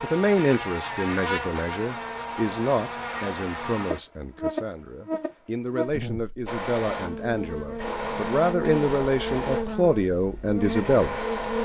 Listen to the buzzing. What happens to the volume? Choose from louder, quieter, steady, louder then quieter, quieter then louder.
steady.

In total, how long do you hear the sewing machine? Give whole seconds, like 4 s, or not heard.
5 s.